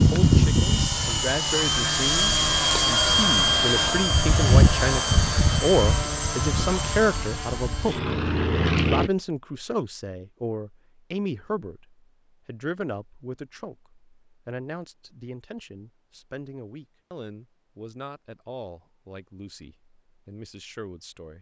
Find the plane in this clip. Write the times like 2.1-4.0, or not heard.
0.0-9.1.